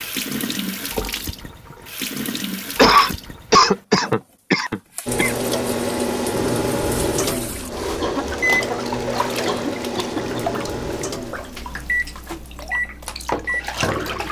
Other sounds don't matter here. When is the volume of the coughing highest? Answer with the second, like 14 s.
3 s.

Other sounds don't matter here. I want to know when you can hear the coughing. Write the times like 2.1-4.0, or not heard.
2.8-5.3, 8.0-8.8, 9.4-10.6.